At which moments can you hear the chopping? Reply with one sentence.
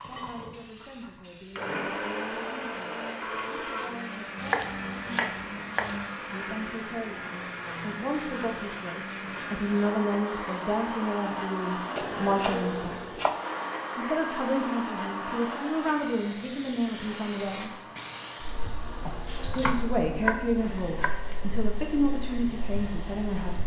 You can hear the chopping from 4.3 to 6.0 s, from 11.9 to 13.4 s and from 19.1 to 21.1 s.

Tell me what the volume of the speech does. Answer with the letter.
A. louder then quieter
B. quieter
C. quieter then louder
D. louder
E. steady
D.